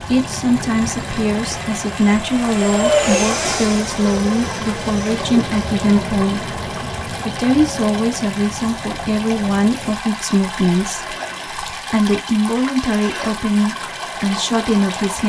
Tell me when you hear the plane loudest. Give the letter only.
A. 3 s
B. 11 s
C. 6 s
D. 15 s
A.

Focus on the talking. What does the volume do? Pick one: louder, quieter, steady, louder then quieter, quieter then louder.
steady.